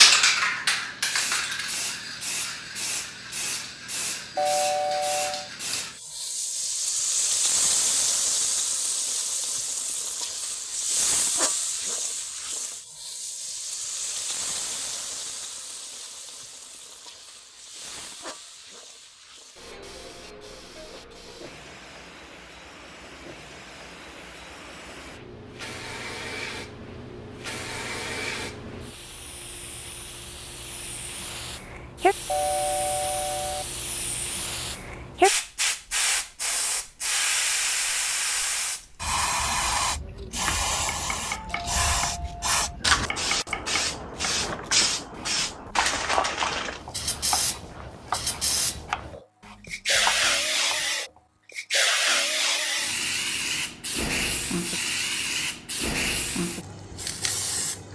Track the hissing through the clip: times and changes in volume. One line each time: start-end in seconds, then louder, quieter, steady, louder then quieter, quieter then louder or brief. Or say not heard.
0.0-57.9 quieter then louder.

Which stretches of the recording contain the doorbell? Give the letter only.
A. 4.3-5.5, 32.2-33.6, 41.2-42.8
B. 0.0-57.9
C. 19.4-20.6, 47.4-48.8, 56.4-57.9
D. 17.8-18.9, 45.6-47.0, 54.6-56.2
A.